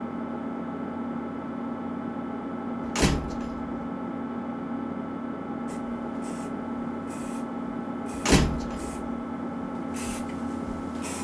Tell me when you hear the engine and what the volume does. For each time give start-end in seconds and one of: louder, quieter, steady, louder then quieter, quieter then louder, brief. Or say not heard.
0.0-11.1 steady.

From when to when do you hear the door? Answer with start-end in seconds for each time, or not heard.
2.9-3.6, 8.2-8.9.